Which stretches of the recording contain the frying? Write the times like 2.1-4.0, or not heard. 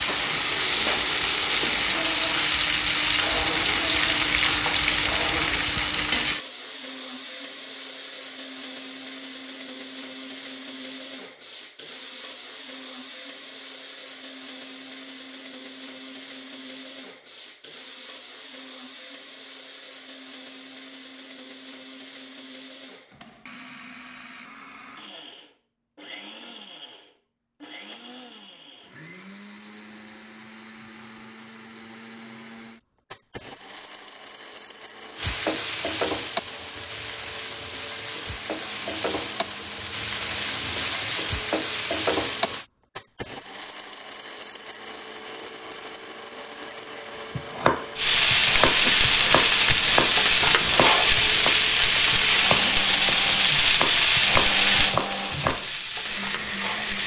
0.0-6.4, 35.1-42.6, 48.0-57.0.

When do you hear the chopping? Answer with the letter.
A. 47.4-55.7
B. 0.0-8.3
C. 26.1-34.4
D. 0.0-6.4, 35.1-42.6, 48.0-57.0
A.